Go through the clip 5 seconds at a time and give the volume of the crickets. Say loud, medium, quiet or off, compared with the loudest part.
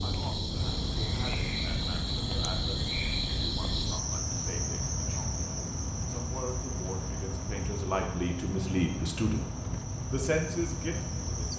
loud, medium, medium.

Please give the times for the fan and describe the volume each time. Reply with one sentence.
You can hear the fan from 0.0 to 11.5 s, at a steady volume.